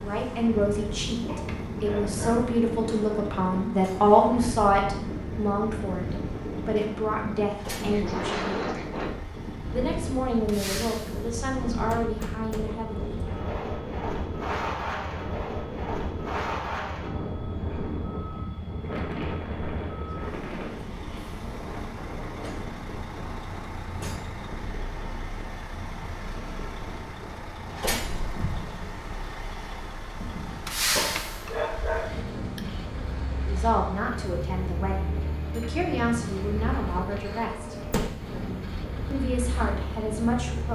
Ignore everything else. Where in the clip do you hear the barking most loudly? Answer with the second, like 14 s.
32 s.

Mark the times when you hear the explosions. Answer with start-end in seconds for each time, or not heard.
28.4-29.1.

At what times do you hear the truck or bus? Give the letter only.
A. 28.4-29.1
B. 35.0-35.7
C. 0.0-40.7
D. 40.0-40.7
C.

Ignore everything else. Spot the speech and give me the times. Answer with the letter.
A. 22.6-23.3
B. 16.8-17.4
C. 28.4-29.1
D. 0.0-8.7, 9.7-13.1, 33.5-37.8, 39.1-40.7
D.